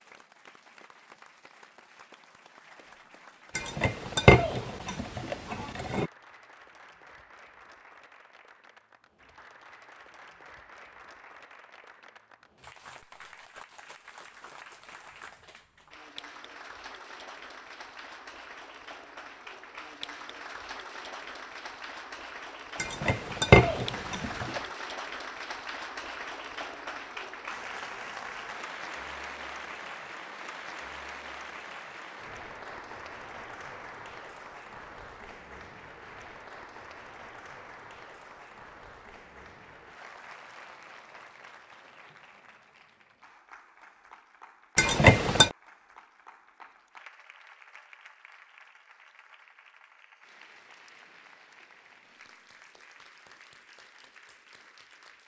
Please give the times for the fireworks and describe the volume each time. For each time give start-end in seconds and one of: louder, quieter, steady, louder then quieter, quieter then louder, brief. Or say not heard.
not heard.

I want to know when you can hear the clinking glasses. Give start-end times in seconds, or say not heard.
3.5-6.1, 22.8-24.6, 44.8-45.5.